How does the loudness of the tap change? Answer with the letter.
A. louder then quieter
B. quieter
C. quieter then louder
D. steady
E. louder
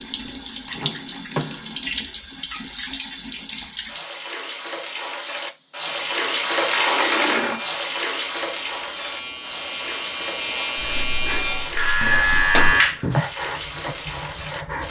A.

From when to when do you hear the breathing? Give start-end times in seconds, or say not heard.
10.8-14.8.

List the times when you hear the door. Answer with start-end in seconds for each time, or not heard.
0.8-1.8, 6.5-7.6, 12.0-13.2.